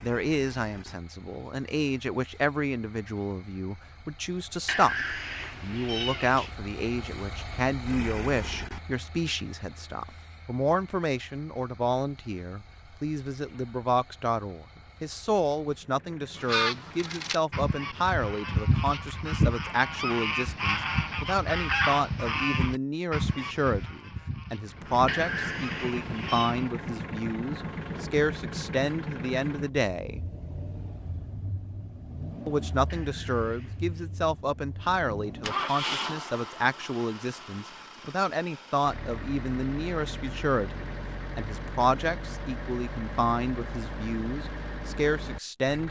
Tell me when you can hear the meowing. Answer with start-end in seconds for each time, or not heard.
4.7-6.5, 25.1-26.6, 32.9-34.1.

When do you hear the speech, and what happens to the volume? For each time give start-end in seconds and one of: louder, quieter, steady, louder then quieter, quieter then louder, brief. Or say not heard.
0.0-30.2 steady
32.5-45.8 steady.